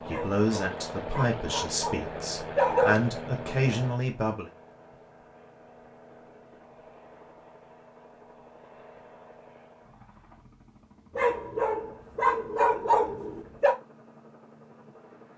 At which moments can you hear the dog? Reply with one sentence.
You can hear the dog from 0.1 to 3.0 s and from 11.2 to 13.8 s.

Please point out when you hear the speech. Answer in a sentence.
You can hear the speech from 0.1 to 4.5 s.